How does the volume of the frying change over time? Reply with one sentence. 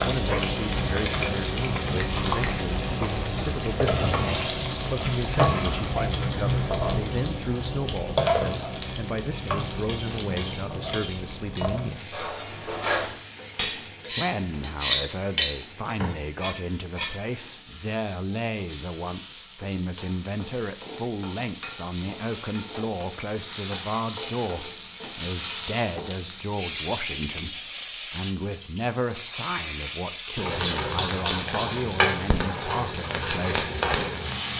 The volume of the frying goes down, then up.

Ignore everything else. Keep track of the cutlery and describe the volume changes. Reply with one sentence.
The loudness of the cutlery goes up.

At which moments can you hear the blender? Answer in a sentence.
You can't hear the blender here.